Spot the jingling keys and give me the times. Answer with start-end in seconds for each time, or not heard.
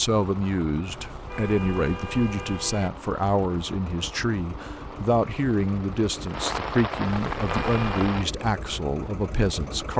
not heard.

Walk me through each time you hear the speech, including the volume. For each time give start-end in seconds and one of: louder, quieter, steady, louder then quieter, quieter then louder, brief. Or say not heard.
0.0-9.9 steady.